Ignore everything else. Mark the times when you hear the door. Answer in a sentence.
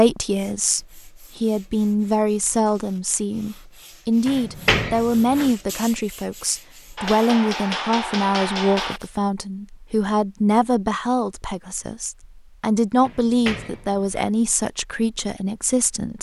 You can hear the door from 4.2 to 5.5 s and from 13.0 to 14.3 s.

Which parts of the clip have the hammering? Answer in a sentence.
The hammering can be heard from 7.0 to 9.0 s.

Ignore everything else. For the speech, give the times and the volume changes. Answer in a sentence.
The speech can be heard from 0.0 to 16.1 s, at a steady volume.